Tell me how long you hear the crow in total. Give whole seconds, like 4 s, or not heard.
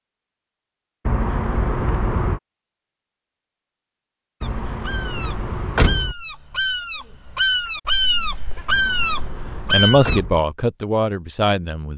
6 s.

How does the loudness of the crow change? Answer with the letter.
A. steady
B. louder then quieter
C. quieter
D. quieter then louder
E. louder
E.